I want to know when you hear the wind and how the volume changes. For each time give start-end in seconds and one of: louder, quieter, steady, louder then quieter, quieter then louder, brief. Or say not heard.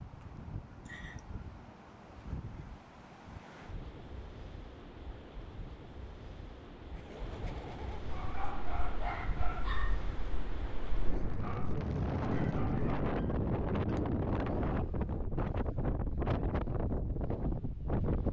0.0-18.2 louder.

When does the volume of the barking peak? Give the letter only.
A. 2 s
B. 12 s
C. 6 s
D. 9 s
D.